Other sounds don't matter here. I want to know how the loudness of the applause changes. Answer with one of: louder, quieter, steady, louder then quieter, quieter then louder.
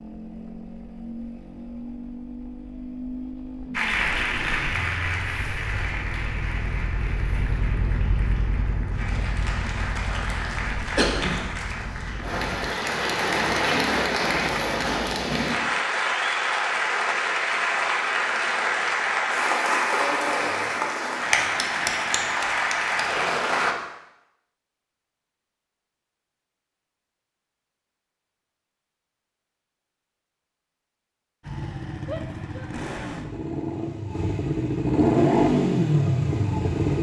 louder.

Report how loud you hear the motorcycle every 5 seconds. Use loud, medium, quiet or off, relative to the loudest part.
quiet, quiet, quiet, off, off, off, medium, loud.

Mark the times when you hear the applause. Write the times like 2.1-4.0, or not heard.
3.7-23.8.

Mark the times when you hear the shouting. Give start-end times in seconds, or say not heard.
32.0-32.7.